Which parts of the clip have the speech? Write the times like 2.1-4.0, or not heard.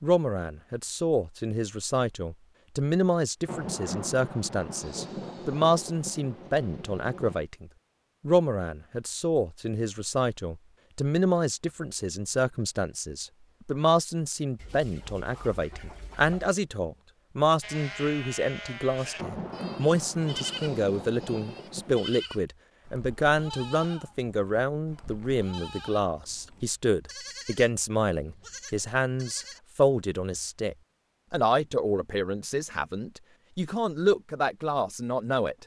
0.0-35.5.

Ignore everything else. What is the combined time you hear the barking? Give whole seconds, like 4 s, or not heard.
not heard.